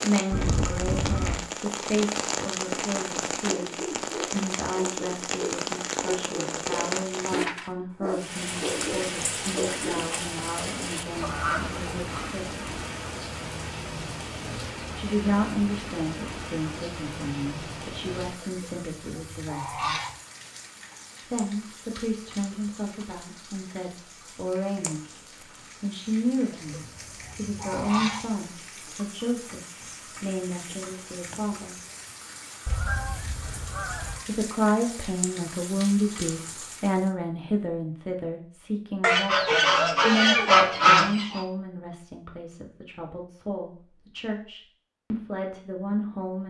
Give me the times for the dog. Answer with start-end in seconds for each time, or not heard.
3.5-10.1.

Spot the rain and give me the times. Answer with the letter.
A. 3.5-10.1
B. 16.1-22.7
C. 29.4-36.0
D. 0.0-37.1
D.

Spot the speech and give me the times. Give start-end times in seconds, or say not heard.
0.0-12.6, 14.9-19.9, 21.3-31.8, 34.2-46.4.